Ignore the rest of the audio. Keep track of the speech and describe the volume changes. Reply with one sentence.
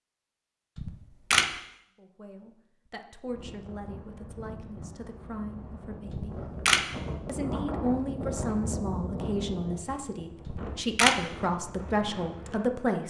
The loudness of the speech goes up.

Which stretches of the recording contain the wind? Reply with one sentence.
You can hear the wind from 3.2 to 12.8 s.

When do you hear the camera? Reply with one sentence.
The camera can be heard from 0.8 to 1.5 s, from 6.1 to 6.8 s and from 10.4 to 11.2 s.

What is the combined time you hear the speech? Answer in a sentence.
The speech can be heard for 10 seconds in total.